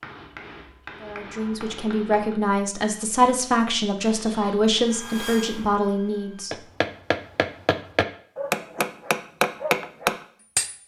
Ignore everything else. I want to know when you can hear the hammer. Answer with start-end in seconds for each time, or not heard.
0.0-2.4, 6.5-10.8.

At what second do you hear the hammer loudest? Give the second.
10 s.